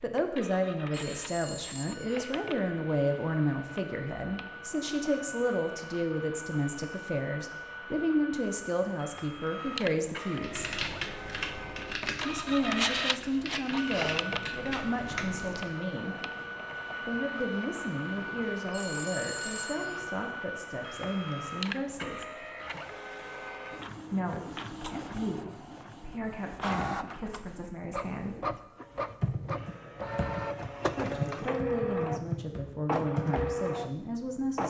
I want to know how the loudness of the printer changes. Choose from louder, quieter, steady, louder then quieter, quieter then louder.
louder.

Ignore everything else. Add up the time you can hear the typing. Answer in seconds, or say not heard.
10 s.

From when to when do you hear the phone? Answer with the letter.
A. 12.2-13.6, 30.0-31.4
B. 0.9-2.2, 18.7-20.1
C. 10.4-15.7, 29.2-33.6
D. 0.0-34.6
B.